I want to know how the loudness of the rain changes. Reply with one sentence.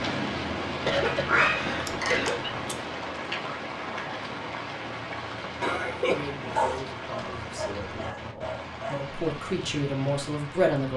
The loudness of the rain goes down.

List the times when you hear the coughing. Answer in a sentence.
The coughing can be heard from 0.7 to 2.5 s and from 5.6 to 6.6 s.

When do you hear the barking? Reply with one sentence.
You can hear the barking from 1.1 to 2.8 s and from 6.5 to 9.3 s.